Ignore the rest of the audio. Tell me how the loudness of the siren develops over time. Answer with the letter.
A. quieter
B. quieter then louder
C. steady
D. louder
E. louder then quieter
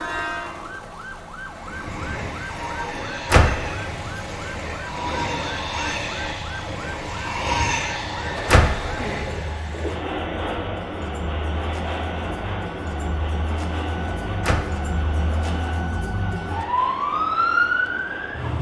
D.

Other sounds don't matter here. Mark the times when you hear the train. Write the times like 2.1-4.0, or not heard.
0.0-18.5.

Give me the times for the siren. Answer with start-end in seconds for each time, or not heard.
0.0-18.5.